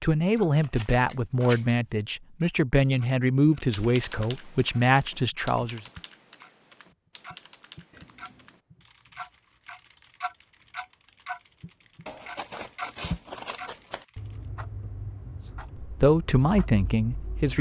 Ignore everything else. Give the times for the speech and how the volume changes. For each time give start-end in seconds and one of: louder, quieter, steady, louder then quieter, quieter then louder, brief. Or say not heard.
0.0-5.8 steady
15.8-17.5 brief.